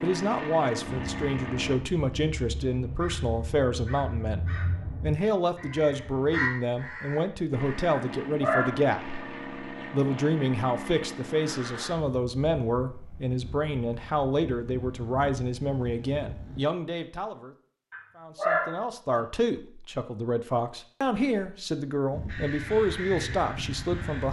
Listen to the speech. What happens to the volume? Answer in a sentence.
The volume of the speech stays about the same.